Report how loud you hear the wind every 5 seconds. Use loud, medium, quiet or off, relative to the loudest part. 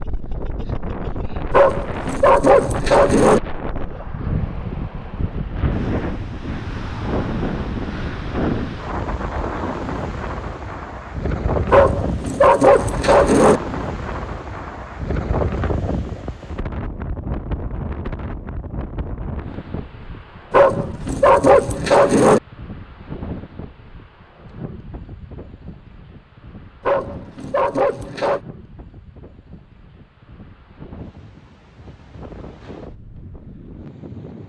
loud, loud, loud, loud, medium, quiet, quiet.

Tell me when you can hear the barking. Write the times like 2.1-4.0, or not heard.
1.5-3.4, 11.7-13.6, 20.5-22.4, 26.9-28.4.